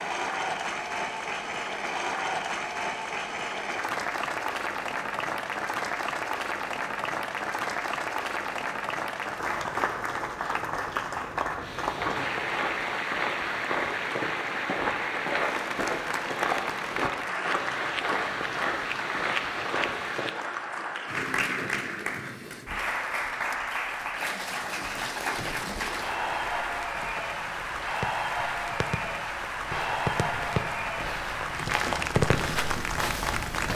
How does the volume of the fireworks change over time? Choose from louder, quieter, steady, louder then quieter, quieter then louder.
louder.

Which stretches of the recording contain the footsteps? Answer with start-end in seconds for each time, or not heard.
11.6-20.3, 26.1-33.7.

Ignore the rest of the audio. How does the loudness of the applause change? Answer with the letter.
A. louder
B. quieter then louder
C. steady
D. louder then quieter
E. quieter
C.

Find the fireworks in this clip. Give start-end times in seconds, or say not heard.
25.4-32.8.